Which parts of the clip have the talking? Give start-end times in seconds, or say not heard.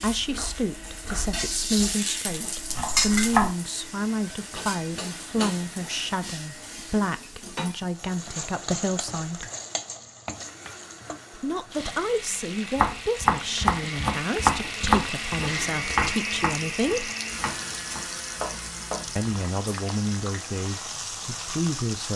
0.0-9.4, 11.3-17.1, 19.1-22.1.